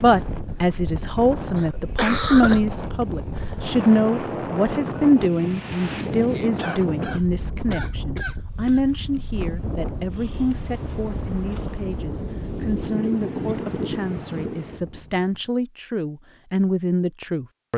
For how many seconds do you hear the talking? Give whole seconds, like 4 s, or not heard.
18 s.